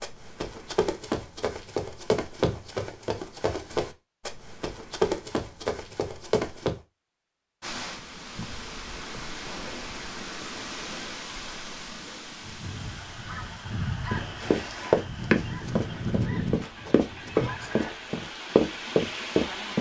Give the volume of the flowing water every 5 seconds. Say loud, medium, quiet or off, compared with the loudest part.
off, loud, loud, loud.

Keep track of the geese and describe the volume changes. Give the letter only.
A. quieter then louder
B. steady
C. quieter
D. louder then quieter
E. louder
D.